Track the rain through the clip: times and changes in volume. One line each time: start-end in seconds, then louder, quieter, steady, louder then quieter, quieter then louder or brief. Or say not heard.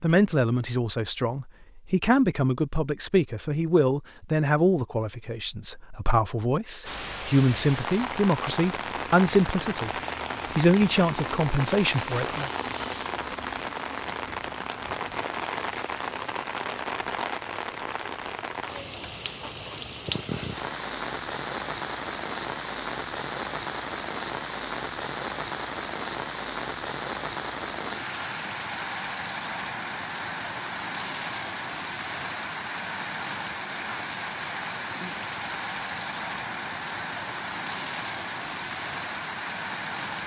6.8-40.2 steady.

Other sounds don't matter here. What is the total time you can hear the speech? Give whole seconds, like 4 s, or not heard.
12 s.